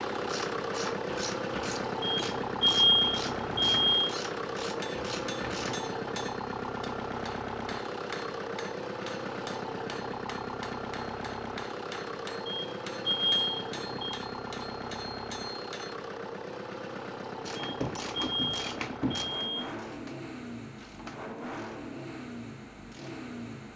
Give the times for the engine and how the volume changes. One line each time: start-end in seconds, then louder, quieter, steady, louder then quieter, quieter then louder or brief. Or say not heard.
0.0-23.7 quieter.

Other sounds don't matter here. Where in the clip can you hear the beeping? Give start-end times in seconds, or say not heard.
2.0-4.2, 12.4-14.2, 17.6-19.7.